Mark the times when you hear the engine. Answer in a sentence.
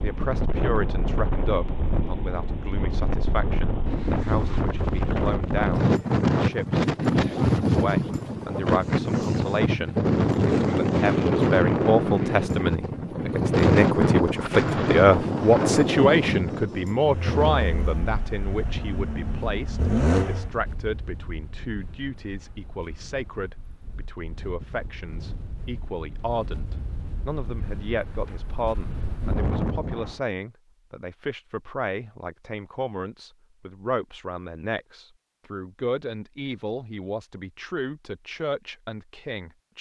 The engine can be heard from 16.9 to 20.5 s.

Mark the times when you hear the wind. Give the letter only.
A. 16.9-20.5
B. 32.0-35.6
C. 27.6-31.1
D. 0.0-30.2
D.